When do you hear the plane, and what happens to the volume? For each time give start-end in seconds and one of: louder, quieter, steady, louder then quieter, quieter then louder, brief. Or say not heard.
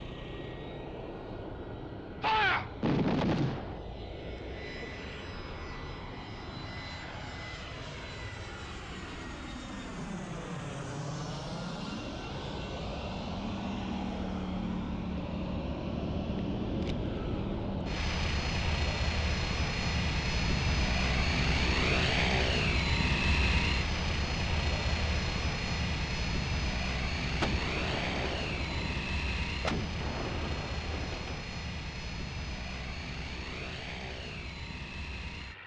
0.0-35.6 louder then quieter.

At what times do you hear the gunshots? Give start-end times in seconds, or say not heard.
2.2-3.8, 27.4-31.4.